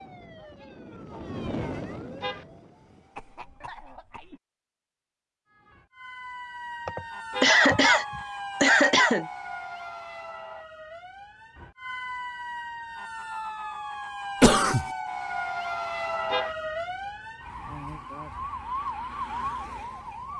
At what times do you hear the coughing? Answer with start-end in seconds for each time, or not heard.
3.1-4.4, 6.8-9.2, 14.4-14.8.